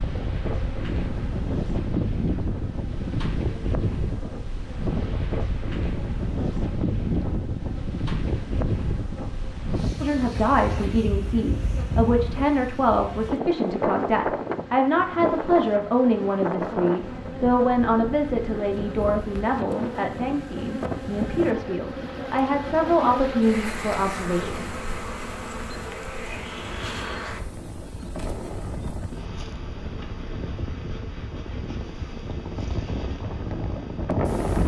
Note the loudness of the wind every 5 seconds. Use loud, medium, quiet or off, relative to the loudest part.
loud, loud, loud, loud, quiet, medium, loud.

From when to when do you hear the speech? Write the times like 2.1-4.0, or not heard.
10.0-24.6.